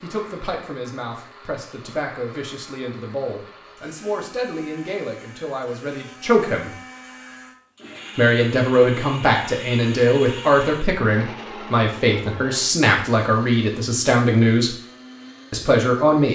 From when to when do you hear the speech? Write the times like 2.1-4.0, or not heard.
0.0-6.7, 8.2-14.8, 15.5-16.2.